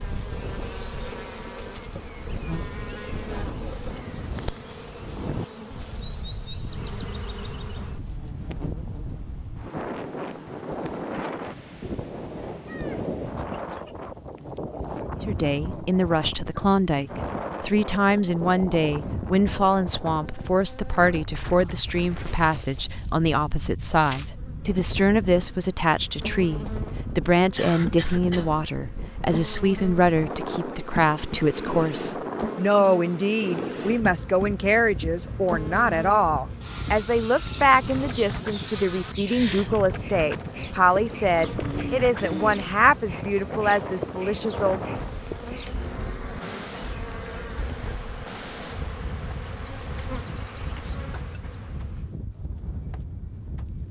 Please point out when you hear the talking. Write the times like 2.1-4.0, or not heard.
15.2-44.9.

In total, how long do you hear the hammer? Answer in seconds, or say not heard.
not heard.